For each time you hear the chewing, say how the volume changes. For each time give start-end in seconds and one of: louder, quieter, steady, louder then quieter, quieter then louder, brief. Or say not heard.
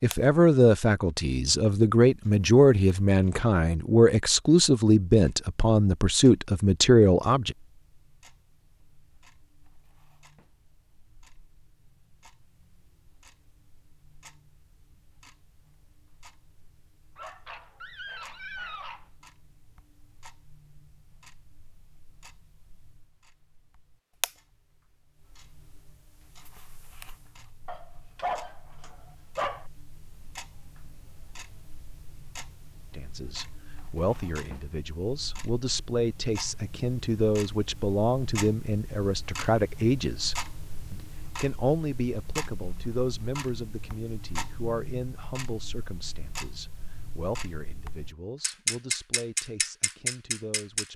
not heard.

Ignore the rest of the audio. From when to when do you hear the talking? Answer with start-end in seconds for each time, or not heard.
0.0-7.5, 32.9-50.9.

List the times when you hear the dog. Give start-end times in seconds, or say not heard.
17.1-19.1, 27.6-29.6.